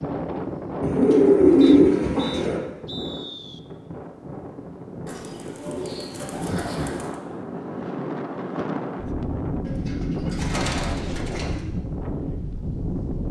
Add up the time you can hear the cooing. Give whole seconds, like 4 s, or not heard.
6 s.